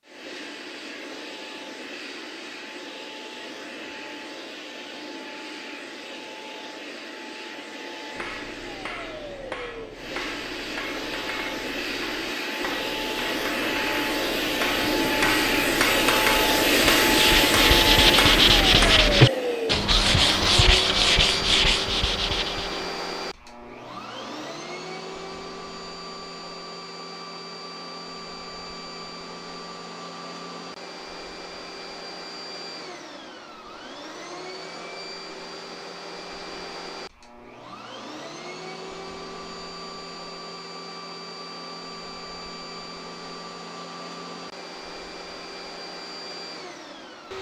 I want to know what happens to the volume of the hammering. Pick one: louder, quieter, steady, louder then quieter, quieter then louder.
louder.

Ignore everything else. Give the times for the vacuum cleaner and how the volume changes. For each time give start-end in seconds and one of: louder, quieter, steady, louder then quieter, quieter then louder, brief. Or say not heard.
0.0-47.3 louder then quieter.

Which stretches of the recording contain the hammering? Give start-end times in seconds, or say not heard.
8.2-19.2.